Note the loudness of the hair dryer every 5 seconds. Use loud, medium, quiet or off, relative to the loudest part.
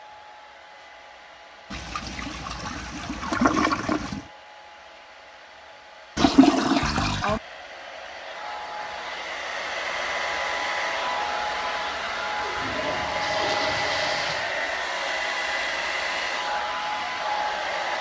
quiet, medium, loud, loud.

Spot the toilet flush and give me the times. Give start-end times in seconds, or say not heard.
1.7-4.2, 6.2-7.4, 12.1-14.5.